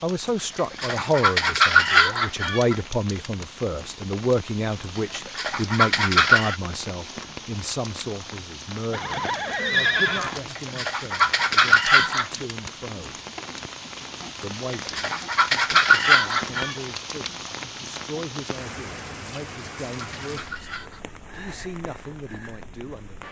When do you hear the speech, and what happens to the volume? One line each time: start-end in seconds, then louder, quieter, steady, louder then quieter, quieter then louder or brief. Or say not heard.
0.0-13.2 quieter
14.4-23.2 steady.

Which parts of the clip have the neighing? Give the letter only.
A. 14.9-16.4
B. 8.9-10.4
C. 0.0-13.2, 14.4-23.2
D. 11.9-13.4
B.